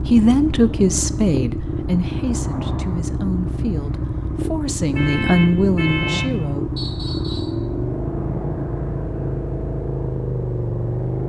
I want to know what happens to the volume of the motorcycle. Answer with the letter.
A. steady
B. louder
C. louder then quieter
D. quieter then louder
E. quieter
A.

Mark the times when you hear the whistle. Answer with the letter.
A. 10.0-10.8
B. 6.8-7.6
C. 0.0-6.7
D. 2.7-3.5
B.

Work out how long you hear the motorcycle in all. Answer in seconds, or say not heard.
11 s.